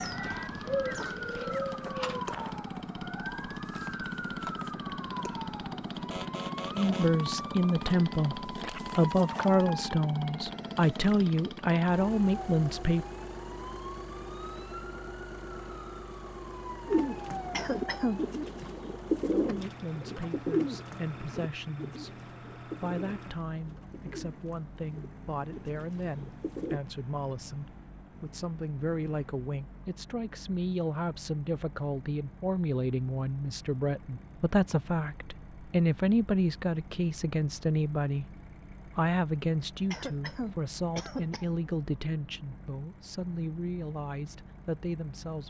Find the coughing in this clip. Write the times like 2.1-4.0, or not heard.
17.5-18.2, 39.9-41.5.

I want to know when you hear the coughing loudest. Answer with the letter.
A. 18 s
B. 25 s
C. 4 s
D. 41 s
A.